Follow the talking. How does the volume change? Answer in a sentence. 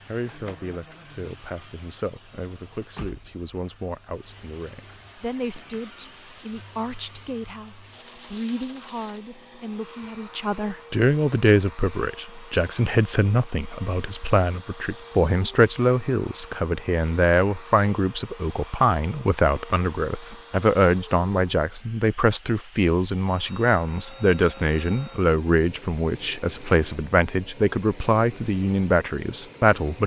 The volume of the talking goes up.